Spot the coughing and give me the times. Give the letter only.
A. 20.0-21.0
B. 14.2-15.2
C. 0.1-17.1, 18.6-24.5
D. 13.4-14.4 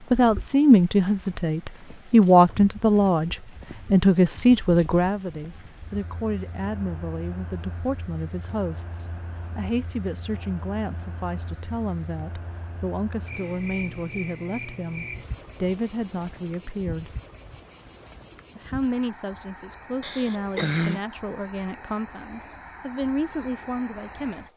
A.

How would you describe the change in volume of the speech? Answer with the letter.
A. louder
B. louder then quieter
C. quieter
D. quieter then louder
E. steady
C.